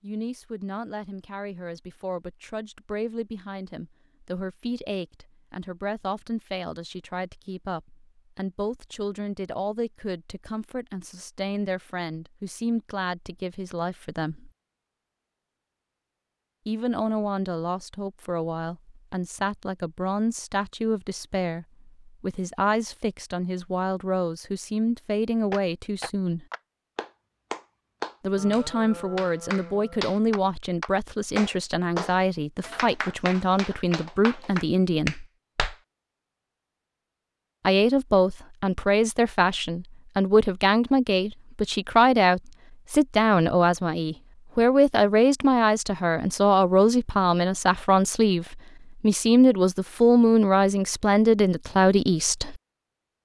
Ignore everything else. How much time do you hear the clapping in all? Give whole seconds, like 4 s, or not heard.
10 s.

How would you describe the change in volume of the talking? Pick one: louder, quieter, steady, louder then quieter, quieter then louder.
louder.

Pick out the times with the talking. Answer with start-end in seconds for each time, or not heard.
0.0-14.5, 16.6-26.4, 28.2-35.2, 37.6-52.6.